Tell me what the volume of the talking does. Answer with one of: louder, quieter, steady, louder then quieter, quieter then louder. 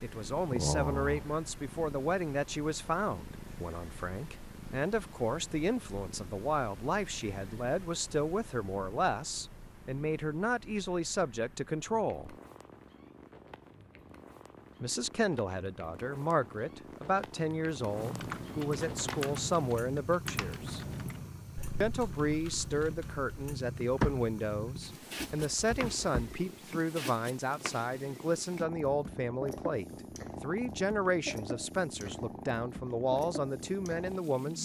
steady.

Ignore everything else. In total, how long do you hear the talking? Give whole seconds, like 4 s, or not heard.
31 s.